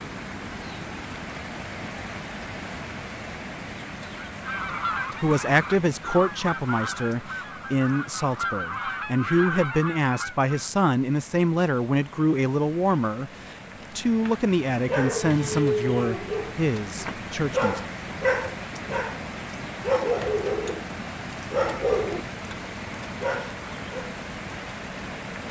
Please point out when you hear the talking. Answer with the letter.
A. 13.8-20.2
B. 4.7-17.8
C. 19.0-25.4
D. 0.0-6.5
B.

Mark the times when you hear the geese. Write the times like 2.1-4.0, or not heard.
4.2-10.7.